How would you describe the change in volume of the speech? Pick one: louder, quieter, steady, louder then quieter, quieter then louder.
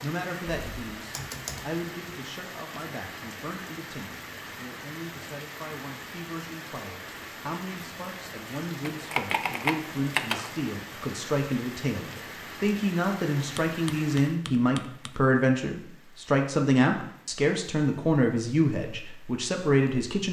louder.